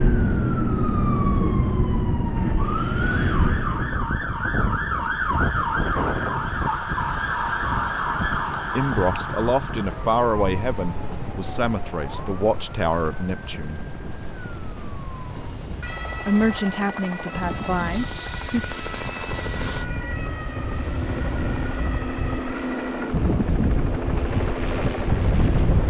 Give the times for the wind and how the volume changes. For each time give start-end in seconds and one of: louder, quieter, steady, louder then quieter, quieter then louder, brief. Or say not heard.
0.0-25.8 quieter then louder.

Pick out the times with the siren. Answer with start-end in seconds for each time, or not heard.
0.0-23.1.